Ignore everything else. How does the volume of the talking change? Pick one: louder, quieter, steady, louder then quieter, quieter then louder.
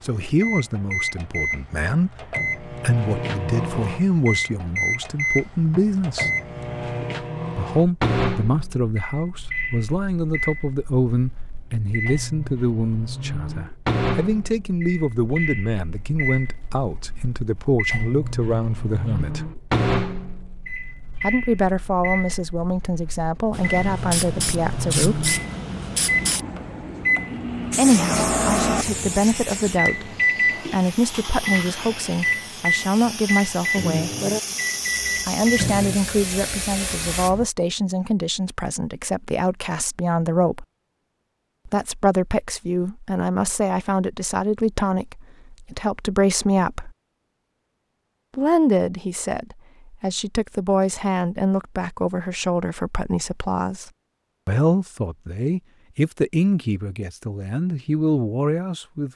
steady.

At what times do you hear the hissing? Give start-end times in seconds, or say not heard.
23.5-37.5.